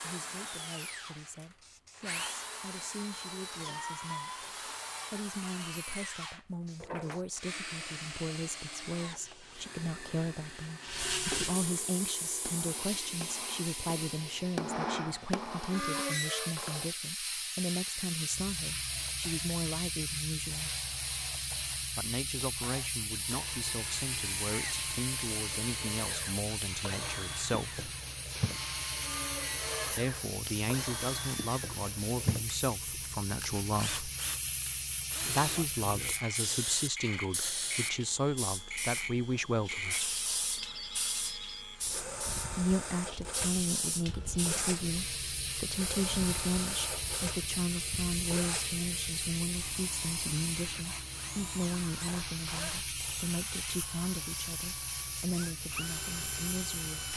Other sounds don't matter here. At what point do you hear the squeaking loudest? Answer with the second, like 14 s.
16 s.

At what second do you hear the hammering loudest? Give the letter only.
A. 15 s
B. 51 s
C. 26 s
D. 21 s
A.